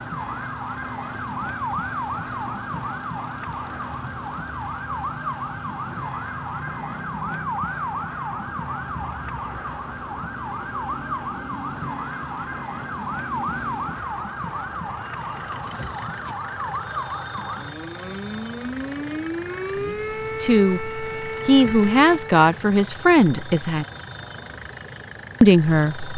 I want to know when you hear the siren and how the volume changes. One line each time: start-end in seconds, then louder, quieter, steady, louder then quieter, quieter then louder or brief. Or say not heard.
0.0-22.4 steady.